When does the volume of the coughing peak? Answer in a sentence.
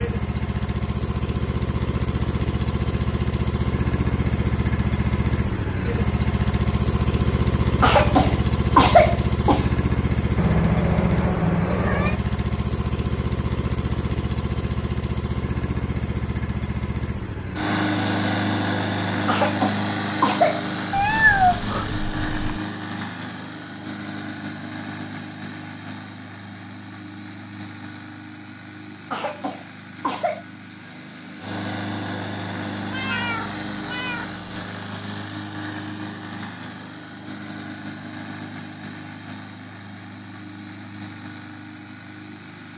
The volume of the coughing peaks at 9 seconds.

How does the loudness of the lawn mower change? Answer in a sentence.
The loudness of the lawn mower goes down.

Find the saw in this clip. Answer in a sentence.
The saw can't be heard in this clip.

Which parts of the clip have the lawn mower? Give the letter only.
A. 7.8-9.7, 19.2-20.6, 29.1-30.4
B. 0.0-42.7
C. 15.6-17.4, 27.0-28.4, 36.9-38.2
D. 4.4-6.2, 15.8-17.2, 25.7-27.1
B.